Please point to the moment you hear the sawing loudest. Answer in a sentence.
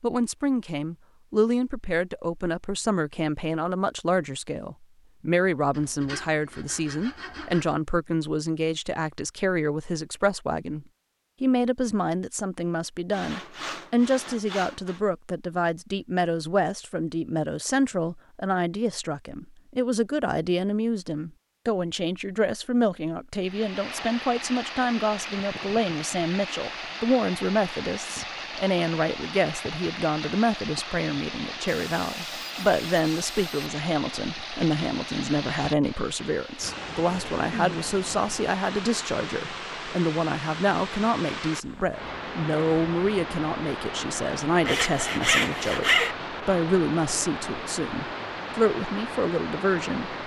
The loudest moment of the sawing is at 46 seconds.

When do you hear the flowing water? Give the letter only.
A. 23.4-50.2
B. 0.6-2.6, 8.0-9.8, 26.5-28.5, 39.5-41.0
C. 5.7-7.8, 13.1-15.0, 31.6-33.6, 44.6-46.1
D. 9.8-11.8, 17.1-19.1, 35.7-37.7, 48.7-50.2
A.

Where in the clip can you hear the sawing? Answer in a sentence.
You can hear the sawing from 5.7 to 7.8 s, from 13.1 to 15.0 s, from 31.6 to 33.6 s and from 44.6 to 46.1 s.